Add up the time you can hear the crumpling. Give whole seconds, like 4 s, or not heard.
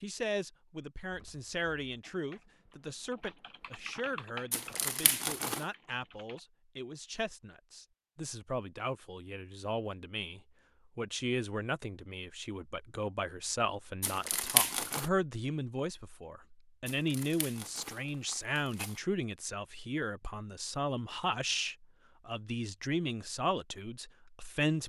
4 s.